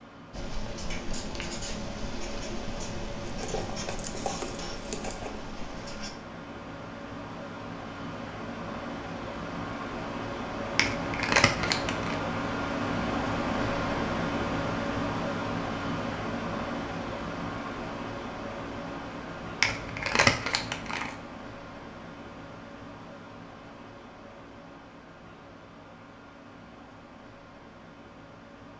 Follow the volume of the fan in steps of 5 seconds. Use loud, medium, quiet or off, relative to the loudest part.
quiet, medium, loud, loud, quiet, quiet.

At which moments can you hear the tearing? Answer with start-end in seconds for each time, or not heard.
3.3-5.4, 10.8-12.2, 19.6-21.1.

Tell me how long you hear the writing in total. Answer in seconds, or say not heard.
6 s.